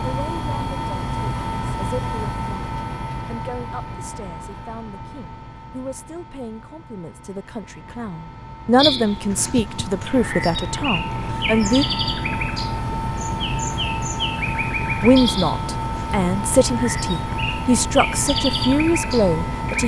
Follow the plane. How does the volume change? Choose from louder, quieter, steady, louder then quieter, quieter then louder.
quieter then louder.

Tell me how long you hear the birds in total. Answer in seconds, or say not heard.
11 s.